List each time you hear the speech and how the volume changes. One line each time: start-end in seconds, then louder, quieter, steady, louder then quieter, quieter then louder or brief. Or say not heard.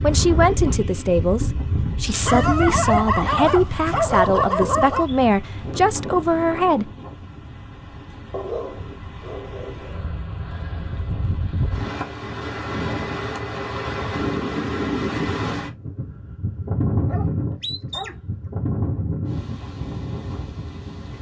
0.0-6.9 steady.